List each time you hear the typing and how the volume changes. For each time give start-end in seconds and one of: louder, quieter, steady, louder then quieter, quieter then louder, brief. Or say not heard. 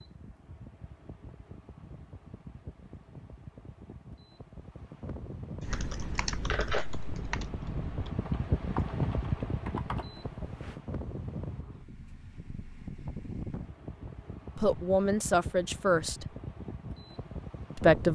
5.6-10.8 quieter then louder.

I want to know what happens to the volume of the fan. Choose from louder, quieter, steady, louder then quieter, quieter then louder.
louder then quieter.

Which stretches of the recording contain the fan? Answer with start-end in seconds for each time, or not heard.
0.0-18.0.